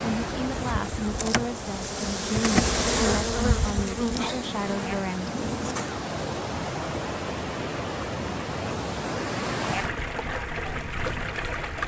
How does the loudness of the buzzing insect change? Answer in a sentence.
The volume of the buzzing insect goes up, then down.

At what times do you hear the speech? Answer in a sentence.
You can hear the speech from 0.0 to 5.3 s.